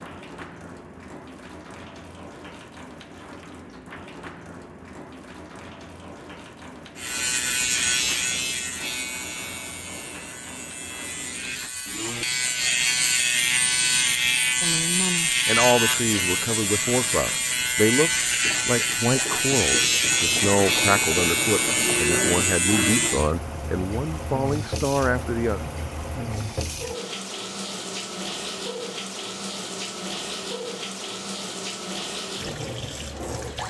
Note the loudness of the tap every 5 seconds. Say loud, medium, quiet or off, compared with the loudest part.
medium, medium, quiet, medium, loud, loud, loud.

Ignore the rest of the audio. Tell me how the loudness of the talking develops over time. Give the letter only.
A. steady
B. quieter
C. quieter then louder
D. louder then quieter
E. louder
A.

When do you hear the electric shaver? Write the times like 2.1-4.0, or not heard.
7.0-23.3.